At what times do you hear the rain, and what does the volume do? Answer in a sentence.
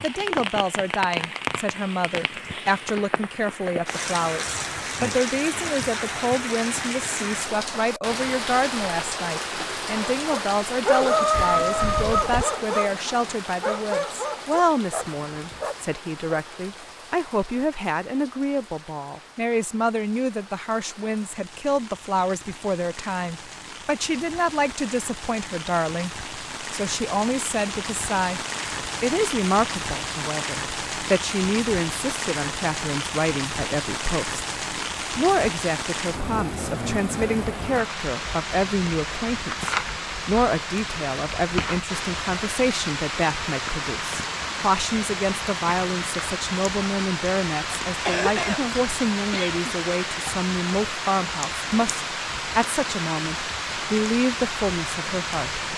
The rain can be heard from 0.0 to 55.7 s, getting quieter then louder.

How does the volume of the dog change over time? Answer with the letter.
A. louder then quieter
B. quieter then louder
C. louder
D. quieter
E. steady
D.